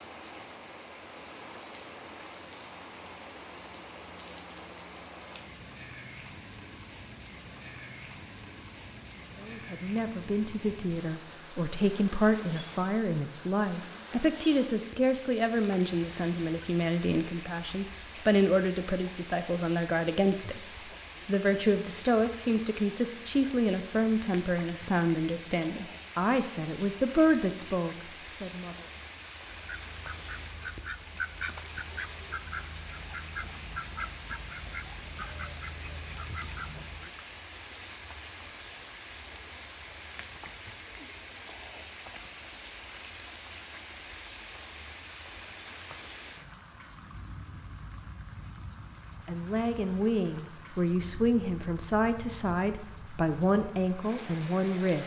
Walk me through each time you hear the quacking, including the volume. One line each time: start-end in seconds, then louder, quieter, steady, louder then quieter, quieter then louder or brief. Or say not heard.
29.5-37.1 steady.